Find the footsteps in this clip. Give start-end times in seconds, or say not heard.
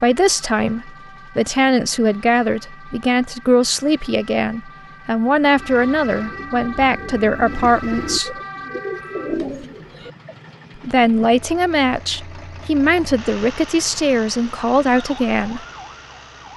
not heard.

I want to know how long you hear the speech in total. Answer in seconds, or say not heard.
13 s.